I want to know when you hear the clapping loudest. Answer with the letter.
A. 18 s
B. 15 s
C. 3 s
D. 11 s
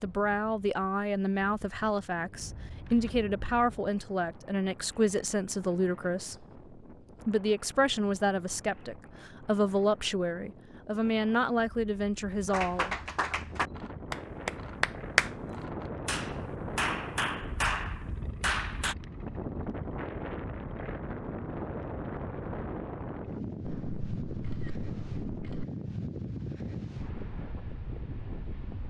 B.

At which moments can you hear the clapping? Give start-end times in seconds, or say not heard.
12.4-18.9.